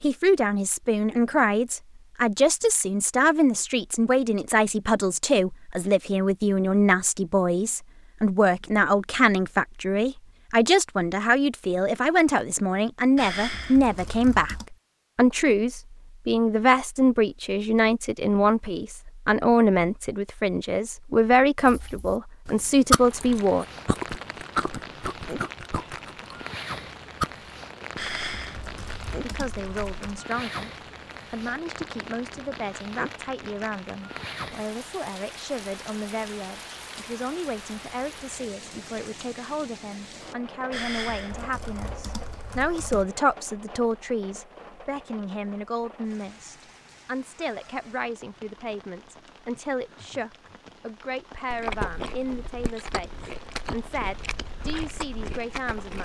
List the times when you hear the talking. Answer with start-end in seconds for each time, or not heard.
0.0-23.6, 29.2-30.7, 31.3-56.0.